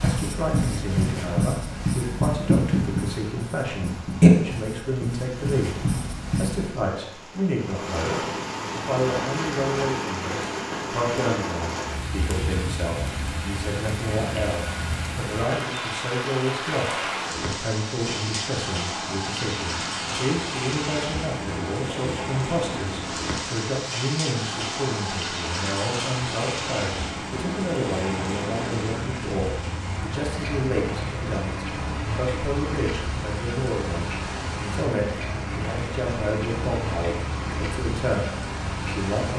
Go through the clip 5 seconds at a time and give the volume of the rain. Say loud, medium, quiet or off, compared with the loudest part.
quiet, loud, loud, loud, loud, loud, loud, loud.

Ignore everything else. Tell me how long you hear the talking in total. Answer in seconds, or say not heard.
39 s.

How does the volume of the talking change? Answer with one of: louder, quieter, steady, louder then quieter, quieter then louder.
steady.